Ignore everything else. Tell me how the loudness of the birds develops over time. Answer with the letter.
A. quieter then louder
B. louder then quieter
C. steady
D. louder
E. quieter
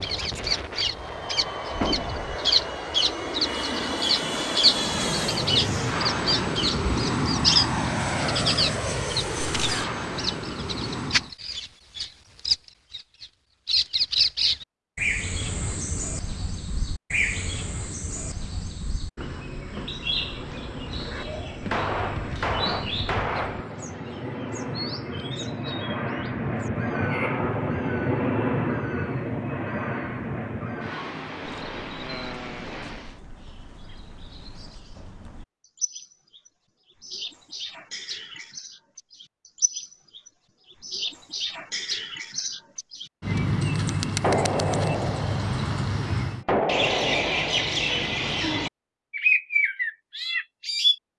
A.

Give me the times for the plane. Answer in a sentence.
You can hear the plane from 0.0 to 11.3 s and from 20.1 to 33.2 s.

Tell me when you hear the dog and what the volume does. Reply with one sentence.
You can't hear the dog here.